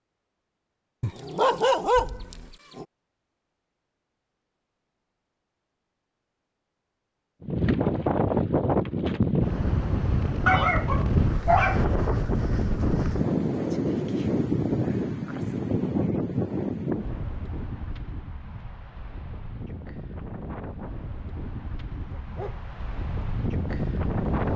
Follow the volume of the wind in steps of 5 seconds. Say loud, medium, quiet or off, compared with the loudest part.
off, loud, loud, medium, medium.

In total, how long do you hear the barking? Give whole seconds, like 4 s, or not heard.
4 s.